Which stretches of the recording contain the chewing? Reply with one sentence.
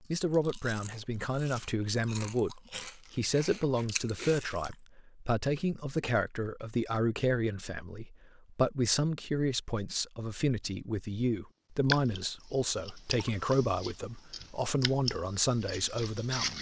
The chewing can be heard from 0.0 to 4.7 s and from 11.8 to 16.5 s.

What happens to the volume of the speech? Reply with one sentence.
The loudness of the speech stays about the same.